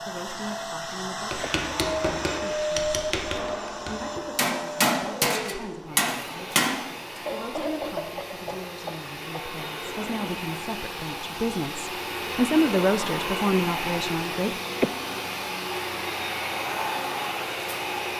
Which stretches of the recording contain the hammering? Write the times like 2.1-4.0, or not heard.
1.3-6.8.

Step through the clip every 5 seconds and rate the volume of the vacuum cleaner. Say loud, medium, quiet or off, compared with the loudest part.
loud, medium, loud, loud.